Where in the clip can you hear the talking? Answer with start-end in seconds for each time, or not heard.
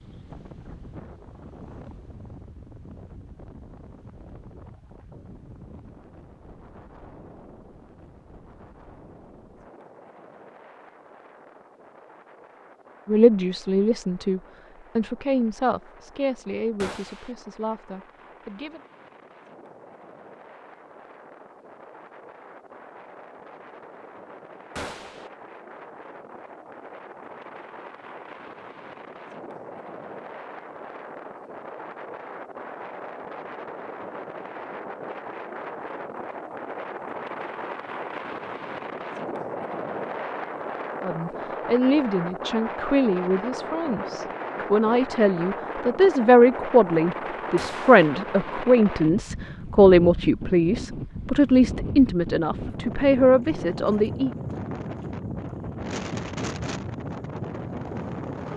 13.1-18.8, 41.0-54.4.